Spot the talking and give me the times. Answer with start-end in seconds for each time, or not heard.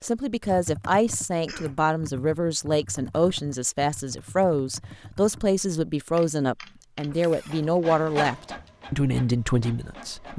0.0-10.3.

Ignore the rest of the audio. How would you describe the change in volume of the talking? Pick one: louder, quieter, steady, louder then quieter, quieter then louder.
steady.